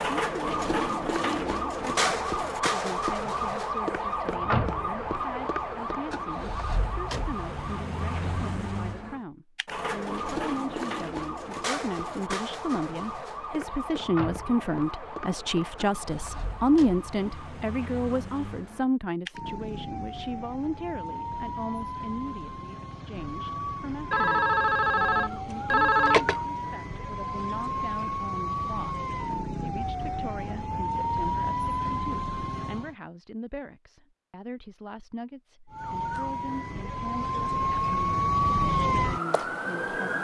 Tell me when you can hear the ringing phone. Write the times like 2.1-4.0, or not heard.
24.1-26.4.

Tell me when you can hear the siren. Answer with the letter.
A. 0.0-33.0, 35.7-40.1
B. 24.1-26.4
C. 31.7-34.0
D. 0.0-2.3
A.